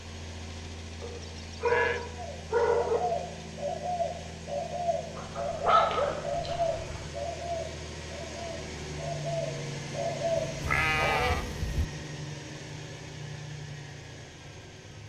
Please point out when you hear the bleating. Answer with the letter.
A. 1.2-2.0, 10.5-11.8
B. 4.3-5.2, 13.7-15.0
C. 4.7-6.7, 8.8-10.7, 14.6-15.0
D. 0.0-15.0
A.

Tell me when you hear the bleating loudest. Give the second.
11 s.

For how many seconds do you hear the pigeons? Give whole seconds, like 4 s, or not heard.
8 s.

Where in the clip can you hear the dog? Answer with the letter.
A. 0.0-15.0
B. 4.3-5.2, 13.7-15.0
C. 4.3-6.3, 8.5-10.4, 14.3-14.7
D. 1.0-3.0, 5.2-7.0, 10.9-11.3
D.